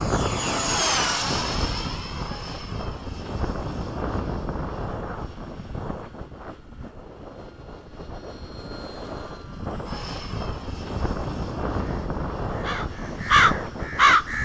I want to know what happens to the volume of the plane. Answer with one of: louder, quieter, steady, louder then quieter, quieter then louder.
quieter then louder.